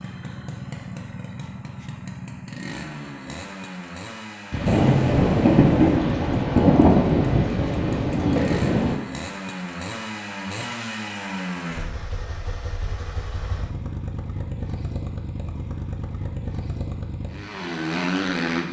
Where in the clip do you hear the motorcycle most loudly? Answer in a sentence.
The loudest moment of the motorcycle is at 18 seconds.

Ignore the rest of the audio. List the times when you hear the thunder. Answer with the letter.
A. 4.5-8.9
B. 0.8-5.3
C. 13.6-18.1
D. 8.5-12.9
A.